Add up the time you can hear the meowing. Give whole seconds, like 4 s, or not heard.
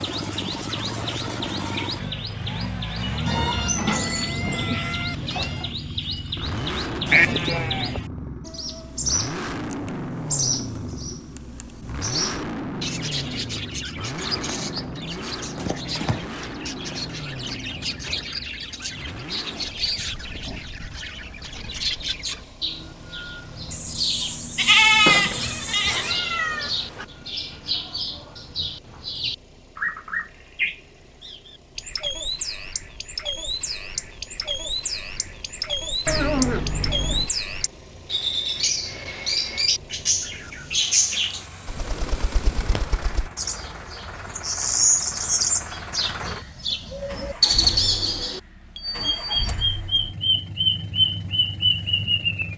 6 s.